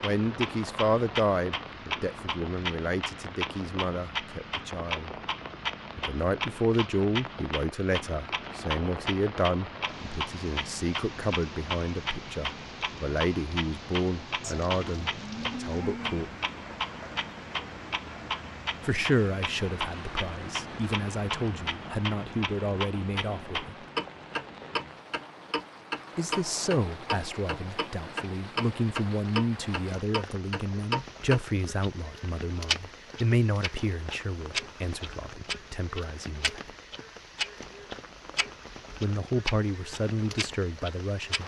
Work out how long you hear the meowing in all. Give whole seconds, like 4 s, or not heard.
2 s.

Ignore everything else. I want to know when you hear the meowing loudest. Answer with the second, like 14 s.
16 s.